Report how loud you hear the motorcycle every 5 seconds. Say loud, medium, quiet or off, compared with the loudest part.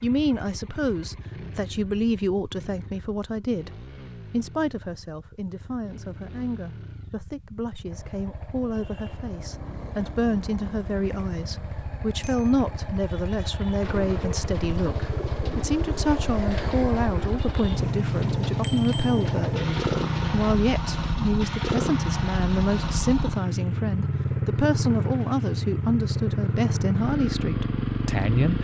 quiet, quiet, medium, loud, loud, loud.